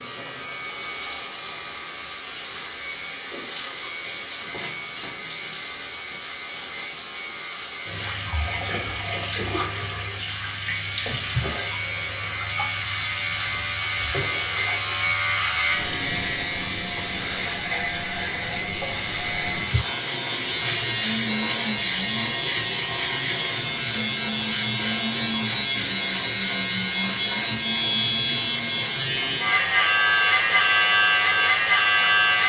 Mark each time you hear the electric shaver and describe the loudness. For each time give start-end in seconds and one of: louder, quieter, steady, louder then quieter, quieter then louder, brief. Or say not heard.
0.0-32.4 louder.